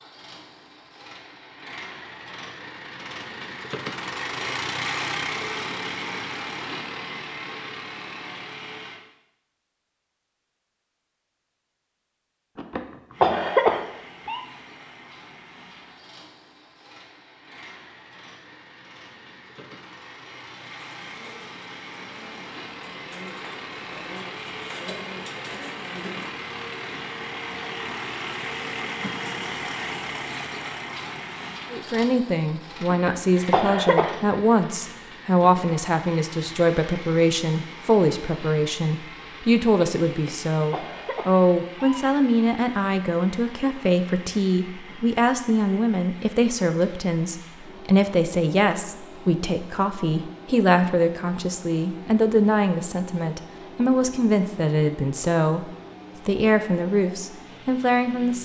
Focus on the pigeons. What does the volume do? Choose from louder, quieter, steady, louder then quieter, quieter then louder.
louder.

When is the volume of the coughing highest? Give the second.
14 s.